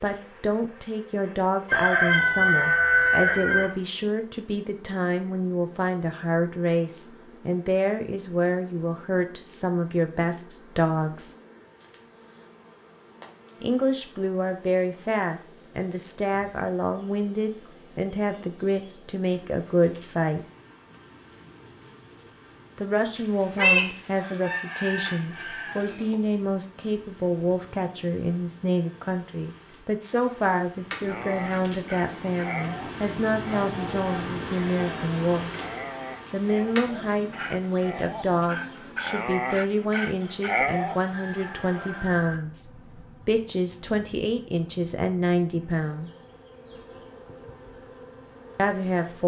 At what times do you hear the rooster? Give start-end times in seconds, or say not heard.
1.6-3.7, 23.1-26.1, 41.0-42.4.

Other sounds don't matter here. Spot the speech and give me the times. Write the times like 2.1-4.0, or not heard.
0.0-11.3, 13.6-20.4, 22.8-35.5, 36.3-46.1, 48.5-49.2.